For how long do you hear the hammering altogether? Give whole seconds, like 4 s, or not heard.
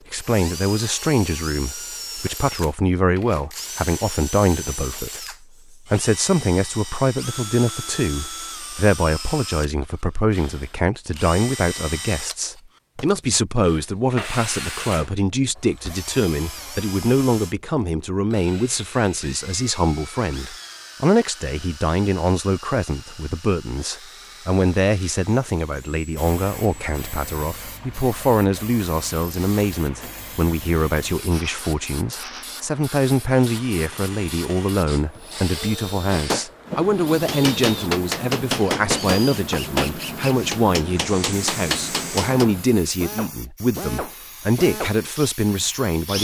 6 s.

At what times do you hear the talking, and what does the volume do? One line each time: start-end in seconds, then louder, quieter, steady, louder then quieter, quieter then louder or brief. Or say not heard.
0.1-46.1 steady.